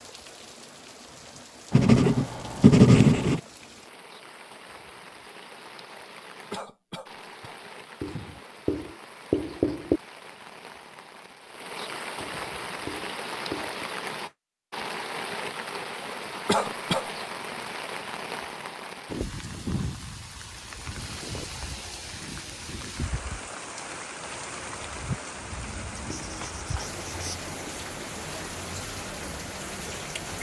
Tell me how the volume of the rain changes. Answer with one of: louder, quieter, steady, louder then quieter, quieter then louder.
louder.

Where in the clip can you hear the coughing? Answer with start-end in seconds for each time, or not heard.
6.5-7.6, 16.4-17.1.